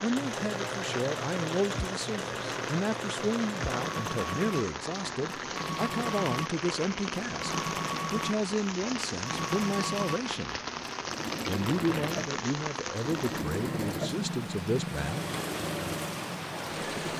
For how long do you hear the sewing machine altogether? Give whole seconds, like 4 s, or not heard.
17 s.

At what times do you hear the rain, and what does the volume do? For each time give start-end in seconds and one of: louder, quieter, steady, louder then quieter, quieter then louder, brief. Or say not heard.
0.0-17.1 steady.